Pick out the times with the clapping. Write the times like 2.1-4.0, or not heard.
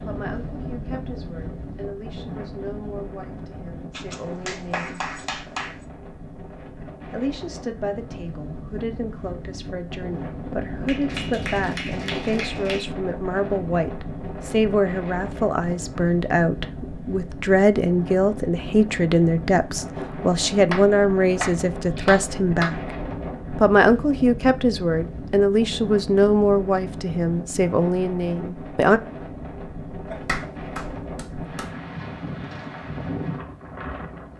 3.9-5.8, 10.8-12.8, 20.7-22.7, 30.1-31.6.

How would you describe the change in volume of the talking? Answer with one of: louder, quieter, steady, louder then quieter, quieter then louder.
louder.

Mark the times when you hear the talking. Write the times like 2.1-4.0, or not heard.
0.0-5.0, 7.1-22.9, 23.6-29.0.